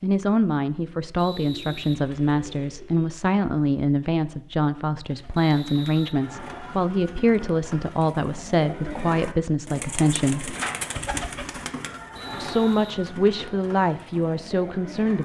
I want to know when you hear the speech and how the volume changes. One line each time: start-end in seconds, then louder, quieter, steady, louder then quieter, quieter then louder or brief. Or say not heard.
0.0-10.6 steady
12.4-15.2 brief.